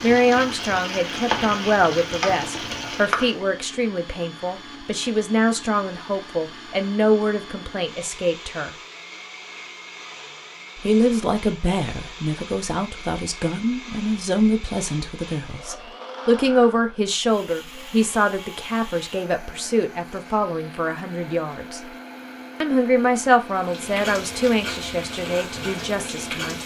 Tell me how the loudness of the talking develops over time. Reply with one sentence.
The loudness of the talking stays about the same.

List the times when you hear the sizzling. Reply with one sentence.
The sizzling can be heard from 0.0 to 3.5 s and from 23.4 to 26.6 s.